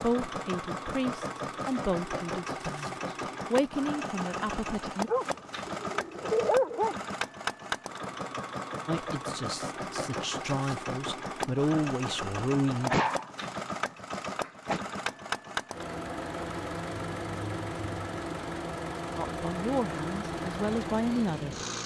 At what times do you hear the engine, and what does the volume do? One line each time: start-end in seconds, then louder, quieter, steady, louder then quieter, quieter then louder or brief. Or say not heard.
0.0-21.8 steady.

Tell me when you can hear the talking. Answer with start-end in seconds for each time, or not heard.
0.0-5.1, 8.8-13.0, 19.1-21.6.